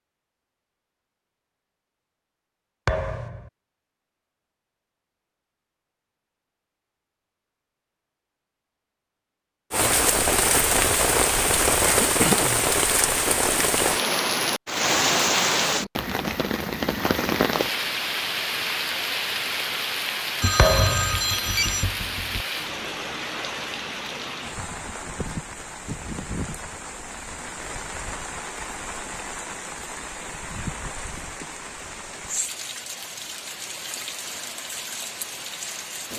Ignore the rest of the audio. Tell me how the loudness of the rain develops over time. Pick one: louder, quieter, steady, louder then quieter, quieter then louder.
quieter.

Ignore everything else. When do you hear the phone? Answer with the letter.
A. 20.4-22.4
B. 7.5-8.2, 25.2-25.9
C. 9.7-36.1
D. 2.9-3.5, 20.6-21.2
A.